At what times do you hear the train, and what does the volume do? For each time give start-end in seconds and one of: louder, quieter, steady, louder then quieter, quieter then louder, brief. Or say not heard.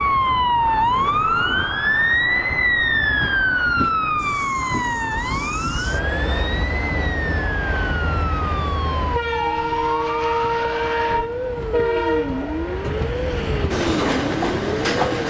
0.0-15.2 louder.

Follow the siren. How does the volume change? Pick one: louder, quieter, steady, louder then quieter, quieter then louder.
quieter.